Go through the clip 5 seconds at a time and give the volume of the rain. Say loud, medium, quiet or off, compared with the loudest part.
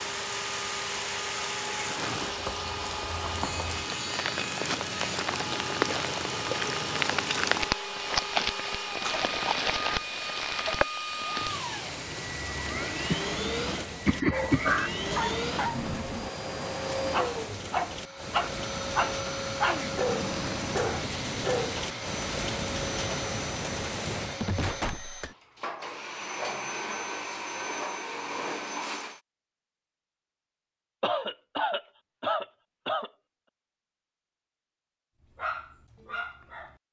medium, loud, medium, medium, medium, off, off, off.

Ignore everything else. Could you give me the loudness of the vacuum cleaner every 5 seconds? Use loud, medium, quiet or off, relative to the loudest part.
loud, loud, loud, loud, loud, loud, off, off.